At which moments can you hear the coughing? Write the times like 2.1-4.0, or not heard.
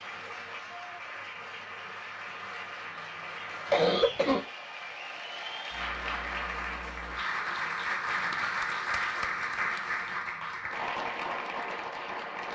3.7-4.5.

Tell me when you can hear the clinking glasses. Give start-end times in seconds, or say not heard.
not heard.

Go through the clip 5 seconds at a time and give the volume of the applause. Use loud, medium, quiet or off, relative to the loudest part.
medium, loud, loud.